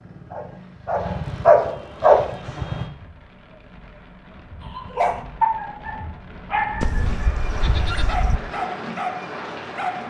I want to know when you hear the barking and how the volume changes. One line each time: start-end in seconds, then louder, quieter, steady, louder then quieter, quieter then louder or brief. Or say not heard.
0.0-2.9 brief
4.6-10.0 quieter then louder.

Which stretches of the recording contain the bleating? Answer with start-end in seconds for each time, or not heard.
6.8-8.4.